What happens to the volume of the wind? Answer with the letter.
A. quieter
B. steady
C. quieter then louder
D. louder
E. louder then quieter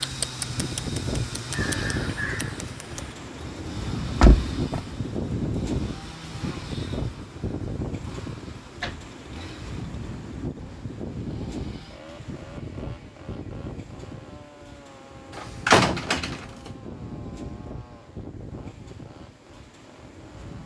A.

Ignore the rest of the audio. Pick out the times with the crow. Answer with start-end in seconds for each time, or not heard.
0.0-3.1.